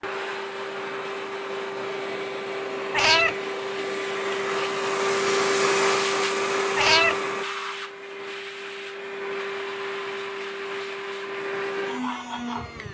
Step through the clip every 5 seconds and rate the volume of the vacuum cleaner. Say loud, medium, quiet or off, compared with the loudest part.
loud, loud, medium.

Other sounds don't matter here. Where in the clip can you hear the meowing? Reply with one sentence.
You can hear the meowing from 2.9 to 3.4 s and from 6.8 to 7.2 s.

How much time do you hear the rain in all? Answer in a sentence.
You can't hear the rain here.